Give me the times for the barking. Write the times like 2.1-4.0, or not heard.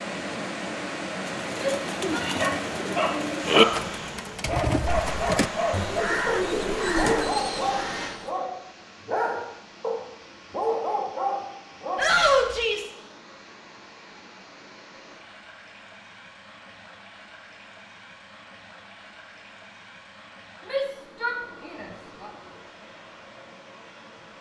2.4-12.2.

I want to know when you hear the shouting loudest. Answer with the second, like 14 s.
12 s.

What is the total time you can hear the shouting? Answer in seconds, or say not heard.
3 s.